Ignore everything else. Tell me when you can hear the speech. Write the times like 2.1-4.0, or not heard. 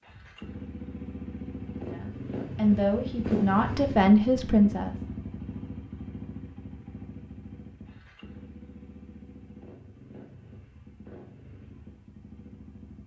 1.8-5.0.